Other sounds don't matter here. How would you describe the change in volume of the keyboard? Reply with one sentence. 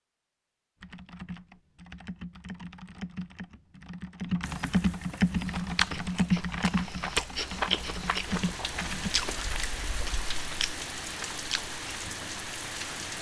The loudness of the keyboard goes up, then down.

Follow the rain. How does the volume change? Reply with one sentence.
The loudness of the rain goes up.